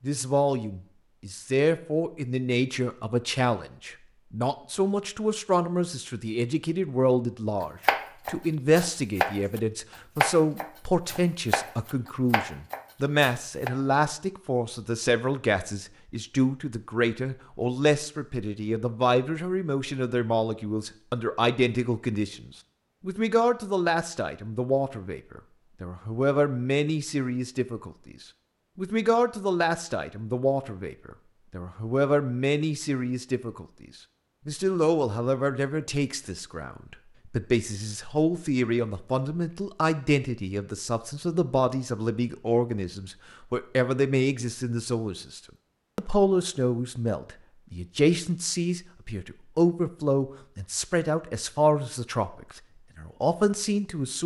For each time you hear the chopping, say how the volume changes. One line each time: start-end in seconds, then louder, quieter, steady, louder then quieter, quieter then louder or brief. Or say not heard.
7.6-13.7 louder then quieter.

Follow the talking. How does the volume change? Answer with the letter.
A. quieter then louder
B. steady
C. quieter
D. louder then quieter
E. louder
B.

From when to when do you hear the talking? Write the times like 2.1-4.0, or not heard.
0.0-28.1, 28.8-33.9, 34.5-54.2.